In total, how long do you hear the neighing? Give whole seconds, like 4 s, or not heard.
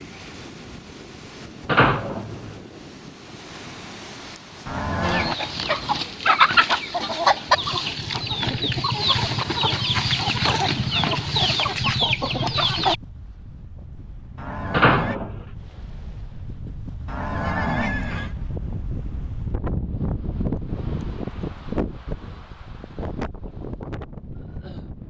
3 s.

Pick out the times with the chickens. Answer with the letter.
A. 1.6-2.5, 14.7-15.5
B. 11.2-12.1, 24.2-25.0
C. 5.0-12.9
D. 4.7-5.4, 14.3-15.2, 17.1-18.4
C.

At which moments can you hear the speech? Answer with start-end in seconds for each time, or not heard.
not heard.